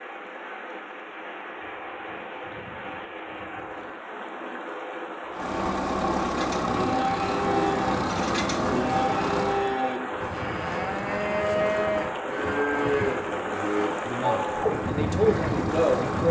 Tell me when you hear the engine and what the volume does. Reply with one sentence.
The engine can be heard from 5.3 to 9.7 s, at a steady volume; and briefly from 13.8 to 16.2 s.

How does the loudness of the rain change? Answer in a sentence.
The loudness of the rain goes up.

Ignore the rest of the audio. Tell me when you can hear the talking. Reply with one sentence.
The talking can be heard from 14.1 to 16.2 s.